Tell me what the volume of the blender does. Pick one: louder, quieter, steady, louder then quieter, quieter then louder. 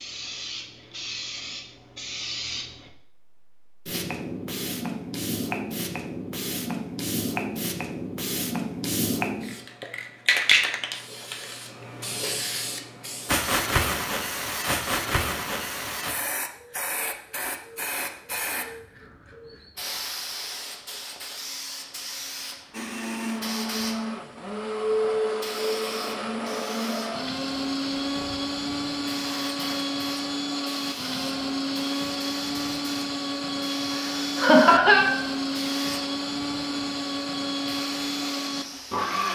steady.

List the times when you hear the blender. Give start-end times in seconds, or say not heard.
22.7-39.3.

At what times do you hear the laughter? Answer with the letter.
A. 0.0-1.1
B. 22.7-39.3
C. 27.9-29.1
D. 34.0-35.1
D.